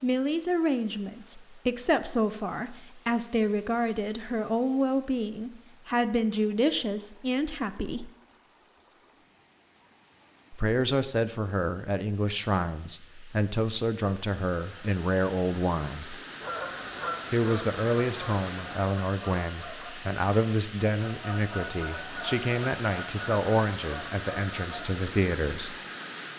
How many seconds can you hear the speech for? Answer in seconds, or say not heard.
22 s.